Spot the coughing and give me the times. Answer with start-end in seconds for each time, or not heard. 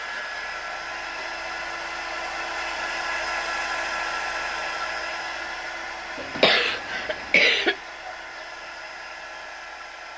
6.2-7.8.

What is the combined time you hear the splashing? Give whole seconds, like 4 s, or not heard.
not heard.